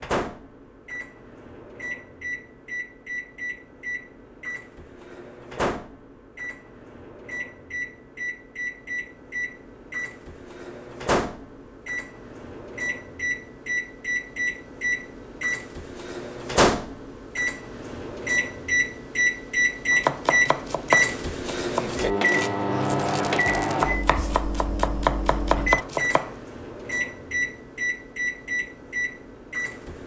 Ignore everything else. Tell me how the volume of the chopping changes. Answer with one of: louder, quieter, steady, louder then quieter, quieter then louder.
quieter then louder.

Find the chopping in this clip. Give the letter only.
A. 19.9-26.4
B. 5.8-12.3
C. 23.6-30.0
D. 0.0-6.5
A.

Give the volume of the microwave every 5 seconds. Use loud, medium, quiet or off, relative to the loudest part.
medium, medium, medium, loud, loud, medium.